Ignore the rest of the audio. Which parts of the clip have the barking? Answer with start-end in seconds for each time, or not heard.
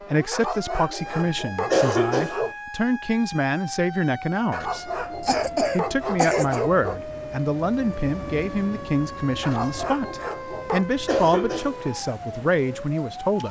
0.3-2.5, 4.5-7.0, 9.4-10.8.